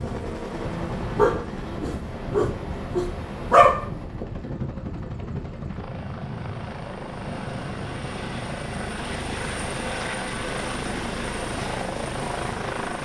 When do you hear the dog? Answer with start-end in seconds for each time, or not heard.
1.1-3.9.